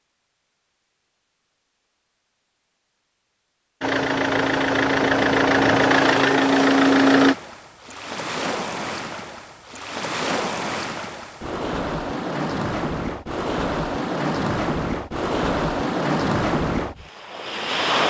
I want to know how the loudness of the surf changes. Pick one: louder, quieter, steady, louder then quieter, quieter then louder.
louder.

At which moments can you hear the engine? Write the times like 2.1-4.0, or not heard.
3.8-7.3.